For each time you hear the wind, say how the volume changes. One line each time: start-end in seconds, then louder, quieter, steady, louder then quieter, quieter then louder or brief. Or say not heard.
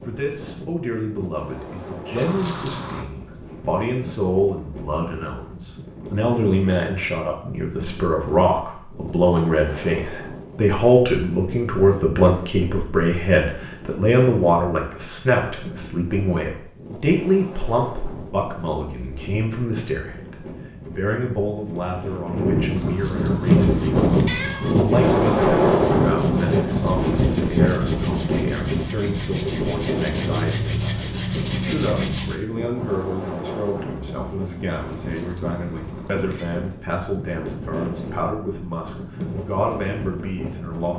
0.0-40.9 louder then quieter.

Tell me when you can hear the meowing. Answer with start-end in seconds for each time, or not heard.
2.1-3.0, 22.8-24.8, 34.9-36.5.